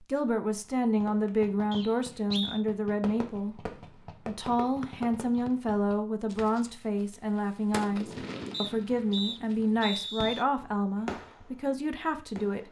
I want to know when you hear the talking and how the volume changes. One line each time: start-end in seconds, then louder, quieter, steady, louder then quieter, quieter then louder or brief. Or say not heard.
0.0-12.6 steady.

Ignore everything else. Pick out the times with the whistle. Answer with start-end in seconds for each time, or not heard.
1.7-2.6, 4.8-5.5, 8.5-10.4.